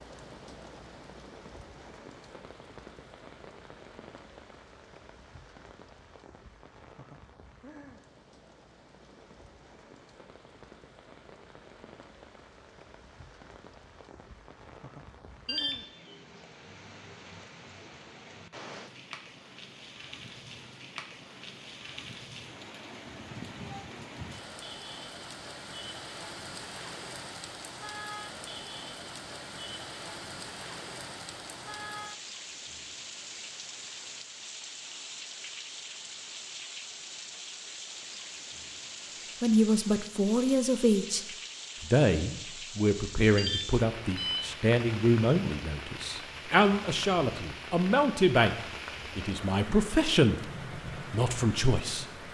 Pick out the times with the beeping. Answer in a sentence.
You can hear the beeping from 15.4 to 15.8 s and from 43.4 to 44.5 s.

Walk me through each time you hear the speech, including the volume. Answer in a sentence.
You can hear the speech from 39.4 to 48.5 s, at a steady volume; and briefly from 49.1 to 52.0 s.